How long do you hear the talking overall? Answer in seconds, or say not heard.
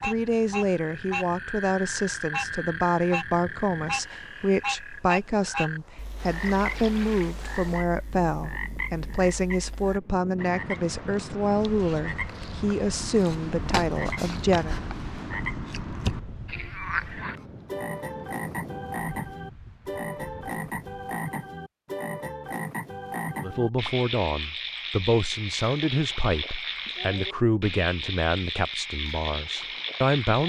22 s.